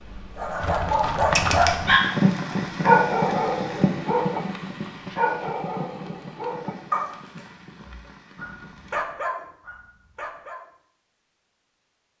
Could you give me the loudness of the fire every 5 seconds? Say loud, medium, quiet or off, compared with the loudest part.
loud, quiet, off.